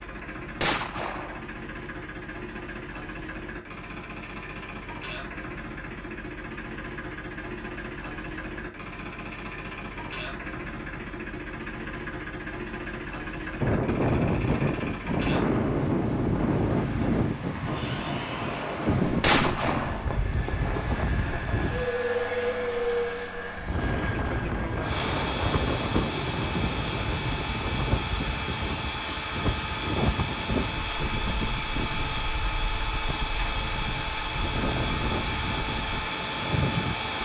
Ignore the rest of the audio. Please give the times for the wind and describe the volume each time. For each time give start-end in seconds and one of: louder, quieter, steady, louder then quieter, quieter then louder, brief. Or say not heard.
13.6-37.2 quieter.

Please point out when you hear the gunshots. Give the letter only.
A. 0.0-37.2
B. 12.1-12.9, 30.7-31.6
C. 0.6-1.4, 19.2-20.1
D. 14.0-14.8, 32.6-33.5
C.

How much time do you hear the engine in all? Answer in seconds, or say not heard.
37 s.